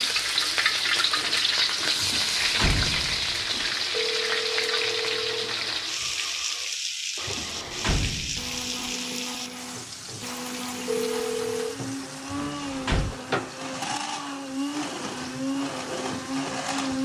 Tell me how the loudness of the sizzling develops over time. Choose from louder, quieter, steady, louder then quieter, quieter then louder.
quieter.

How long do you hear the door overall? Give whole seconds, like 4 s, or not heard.
4 s.